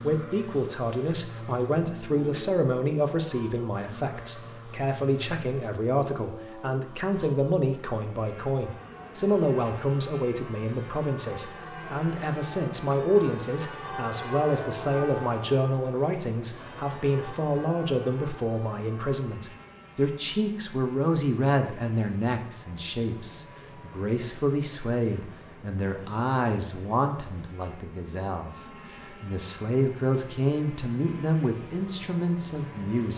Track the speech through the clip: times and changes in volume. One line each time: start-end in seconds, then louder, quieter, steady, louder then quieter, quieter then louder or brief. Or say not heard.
0.0-33.1 steady.